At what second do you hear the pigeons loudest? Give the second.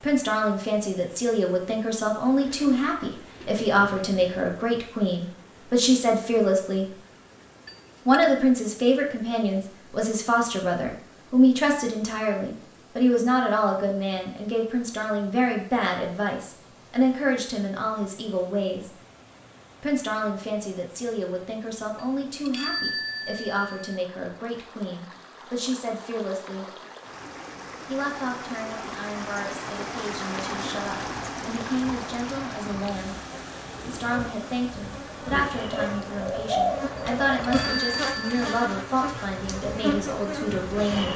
37 s.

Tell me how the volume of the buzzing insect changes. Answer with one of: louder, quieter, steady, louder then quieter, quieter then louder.
louder.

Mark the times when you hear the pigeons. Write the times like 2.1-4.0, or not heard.
2.4-4.5, 35.7-37.5.